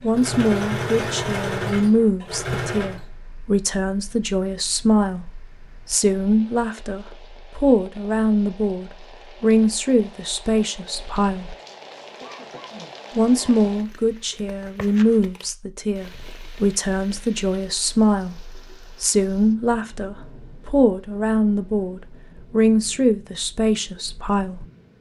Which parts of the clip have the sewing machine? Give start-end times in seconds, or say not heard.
0.0-3.1.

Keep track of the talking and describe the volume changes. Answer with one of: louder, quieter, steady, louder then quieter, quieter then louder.
steady.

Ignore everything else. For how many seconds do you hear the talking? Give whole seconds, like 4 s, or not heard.
23 s.